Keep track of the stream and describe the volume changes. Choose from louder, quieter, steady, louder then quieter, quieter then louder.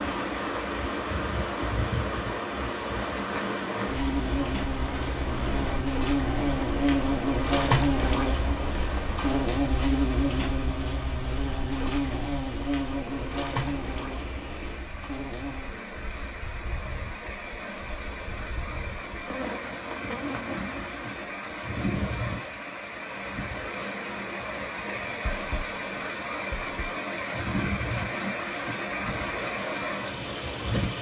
quieter then louder.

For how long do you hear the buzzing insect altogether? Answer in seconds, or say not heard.
31 s.